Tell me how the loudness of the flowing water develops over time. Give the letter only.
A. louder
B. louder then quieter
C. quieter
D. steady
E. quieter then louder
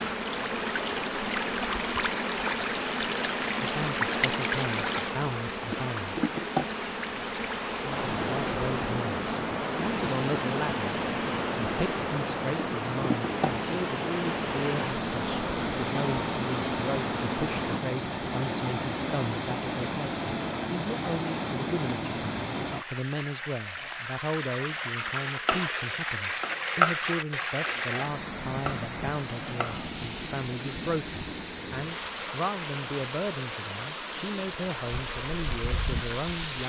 D.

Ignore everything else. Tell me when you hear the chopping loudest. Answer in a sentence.
The volume of the chopping peaks at 27 seconds.